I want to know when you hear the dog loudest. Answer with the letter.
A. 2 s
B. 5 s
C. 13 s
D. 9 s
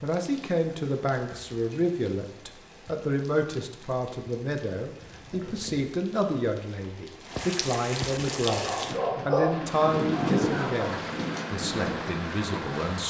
D.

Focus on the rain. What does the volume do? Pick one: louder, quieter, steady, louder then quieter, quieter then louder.
louder.